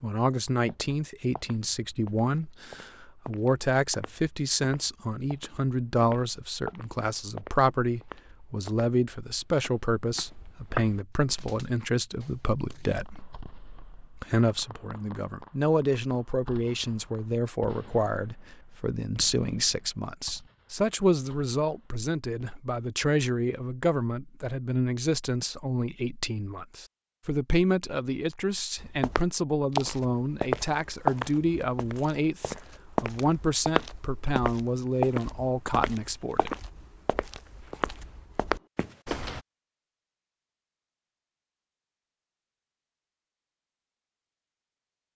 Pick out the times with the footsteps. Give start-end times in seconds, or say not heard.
0.7-11.0, 28.8-39.4.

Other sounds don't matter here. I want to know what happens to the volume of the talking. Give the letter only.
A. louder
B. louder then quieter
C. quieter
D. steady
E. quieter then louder
D.